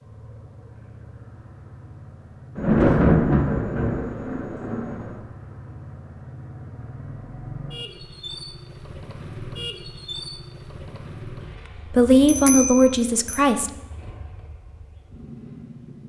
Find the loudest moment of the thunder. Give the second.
3 s.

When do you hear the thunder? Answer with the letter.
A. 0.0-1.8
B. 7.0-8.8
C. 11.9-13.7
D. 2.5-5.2
D.